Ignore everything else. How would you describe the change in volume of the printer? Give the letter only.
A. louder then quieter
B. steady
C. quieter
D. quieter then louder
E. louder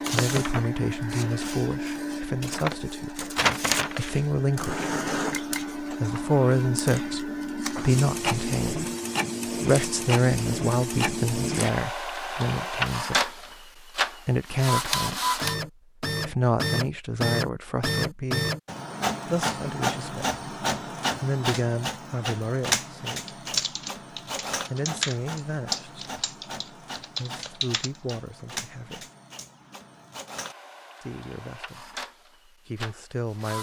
C.